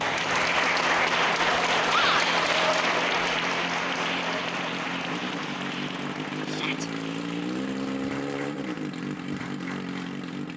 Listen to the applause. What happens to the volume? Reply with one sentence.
The volume of the applause goes down.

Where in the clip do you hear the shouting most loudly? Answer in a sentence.
The loudest moment of the shouting is at 2 seconds.